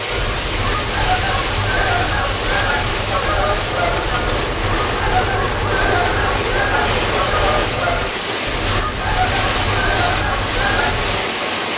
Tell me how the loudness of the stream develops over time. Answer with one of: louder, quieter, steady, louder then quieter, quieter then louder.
steady.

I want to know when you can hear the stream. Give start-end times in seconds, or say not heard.
0.0-11.7.